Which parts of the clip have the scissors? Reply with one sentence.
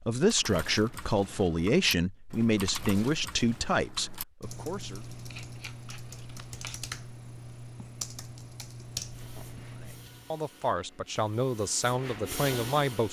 The scissors can be heard from 5.1 to 6.8 s.